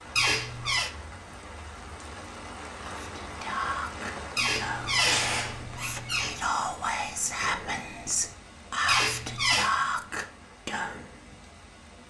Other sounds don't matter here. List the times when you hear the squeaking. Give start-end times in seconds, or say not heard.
0.1-0.9, 4.3-6.3, 8.8-9.7.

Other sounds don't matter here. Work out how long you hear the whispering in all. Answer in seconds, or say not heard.
8 s.